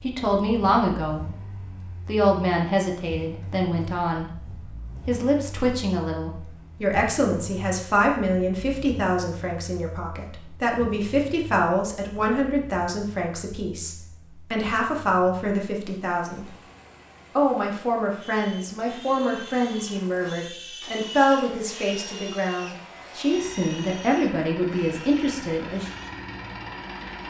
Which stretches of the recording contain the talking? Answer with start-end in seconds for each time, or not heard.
0.0-1.4, 2.0-16.6, 17.4-25.9.